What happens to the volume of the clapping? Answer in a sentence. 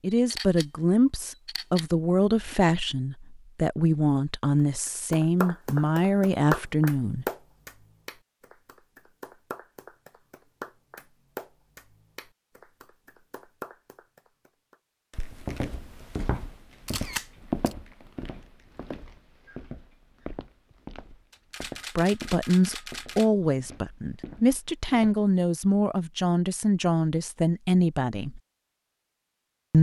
The volume of the clapping goes down.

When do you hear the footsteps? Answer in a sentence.
You can hear the footsteps from 15.1 to 25.1 s.